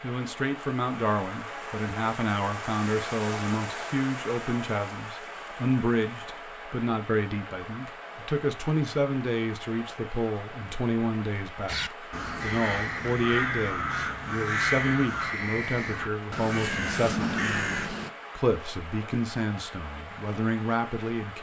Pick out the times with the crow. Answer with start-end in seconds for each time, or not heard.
11.7-18.1.